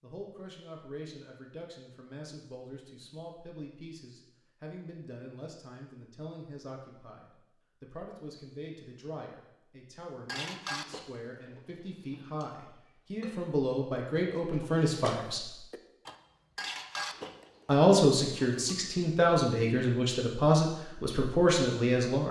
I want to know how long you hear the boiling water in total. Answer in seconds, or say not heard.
not heard.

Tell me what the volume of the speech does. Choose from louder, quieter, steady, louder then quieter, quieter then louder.
louder.